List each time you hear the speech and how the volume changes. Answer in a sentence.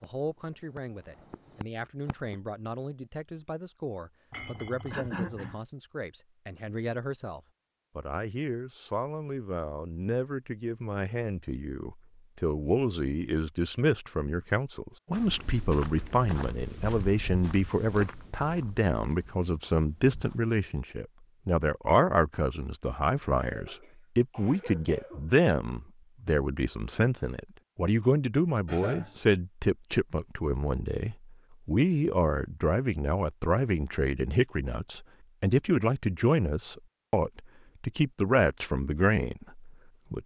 You can hear the speech from 0.0 to 40.2 s, getting louder.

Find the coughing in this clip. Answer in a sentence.
You can hear the coughing from 4.9 to 5.6 s, from 23.4 to 25.3 s and from 28.6 to 29.1 s.